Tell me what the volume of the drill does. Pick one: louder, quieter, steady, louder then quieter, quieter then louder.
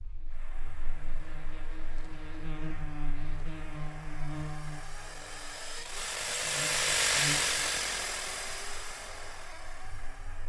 louder then quieter.